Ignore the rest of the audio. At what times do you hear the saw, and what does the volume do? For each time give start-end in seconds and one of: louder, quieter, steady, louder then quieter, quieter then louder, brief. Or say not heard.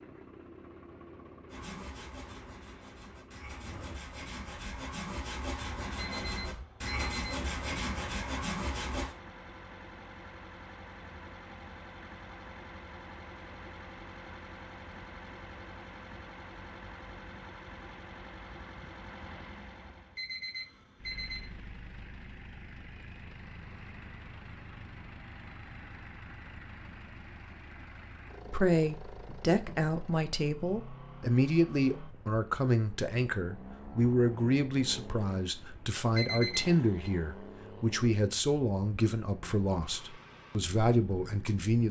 1.4-9.2 louder.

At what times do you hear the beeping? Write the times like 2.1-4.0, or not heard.
6.0-7.3, 20.1-21.5, 36.1-37.0.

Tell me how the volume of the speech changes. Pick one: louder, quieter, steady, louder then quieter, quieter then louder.
steady.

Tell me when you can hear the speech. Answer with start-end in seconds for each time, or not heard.
28.5-41.8.